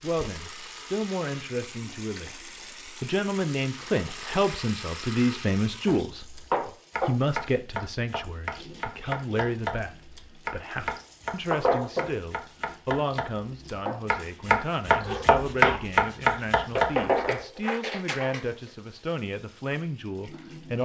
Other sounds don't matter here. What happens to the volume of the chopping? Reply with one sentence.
The volume of the chopping goes up.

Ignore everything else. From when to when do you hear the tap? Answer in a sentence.
You can hear the tap from 0.0 to 20.7 s.